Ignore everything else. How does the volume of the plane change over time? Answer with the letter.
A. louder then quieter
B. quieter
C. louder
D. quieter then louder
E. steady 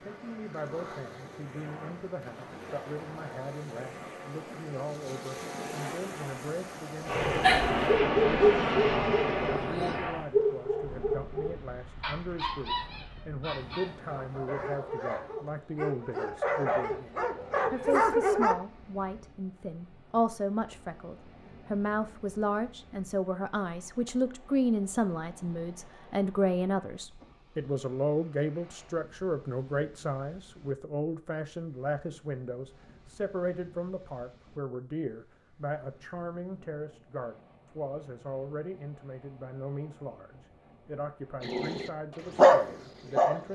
C.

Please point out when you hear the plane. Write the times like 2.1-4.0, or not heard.
0.0-10.2.